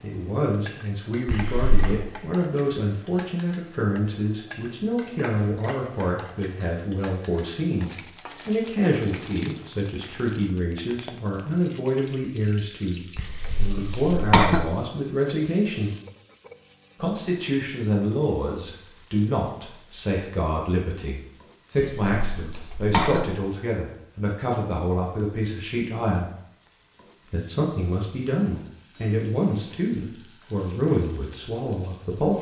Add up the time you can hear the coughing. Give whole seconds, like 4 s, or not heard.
4 s.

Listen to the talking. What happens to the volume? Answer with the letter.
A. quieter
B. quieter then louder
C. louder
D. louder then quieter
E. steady
E.